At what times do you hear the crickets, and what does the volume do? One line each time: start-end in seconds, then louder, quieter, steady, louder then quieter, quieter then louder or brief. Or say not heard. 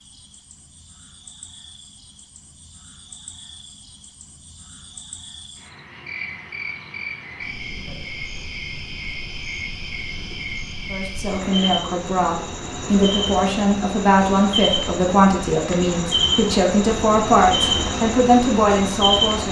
0.0-19.4 louder.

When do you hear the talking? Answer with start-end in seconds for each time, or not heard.
10.9-19.4.